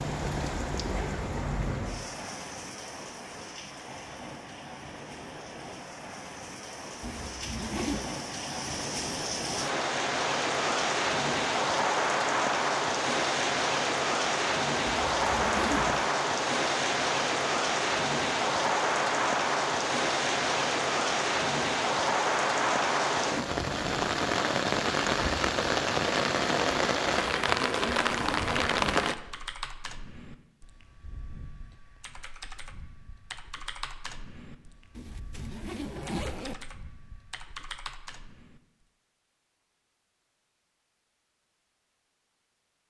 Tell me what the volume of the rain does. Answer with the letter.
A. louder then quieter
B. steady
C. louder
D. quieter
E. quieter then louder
C.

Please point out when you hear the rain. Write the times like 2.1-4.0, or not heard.
0.0-29.1.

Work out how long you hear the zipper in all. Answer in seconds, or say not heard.
4 s.